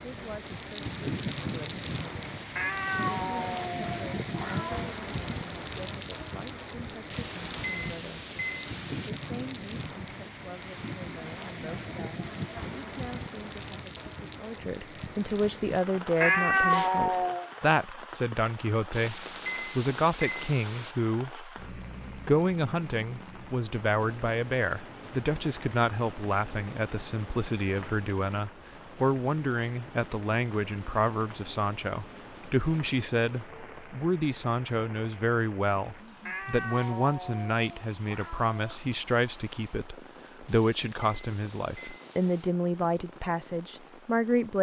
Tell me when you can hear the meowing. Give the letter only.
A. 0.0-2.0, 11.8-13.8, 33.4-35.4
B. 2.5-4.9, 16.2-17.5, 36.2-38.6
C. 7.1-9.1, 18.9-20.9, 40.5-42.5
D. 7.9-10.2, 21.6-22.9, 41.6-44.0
B.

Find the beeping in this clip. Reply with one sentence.
The beeping can be heard from 7.1 to 9.1 s, from 18.9 to 20.9 s and from 40.5 to 42.5 s.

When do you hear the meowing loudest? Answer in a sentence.
The loudest moment of the meowing is at 17 seconds.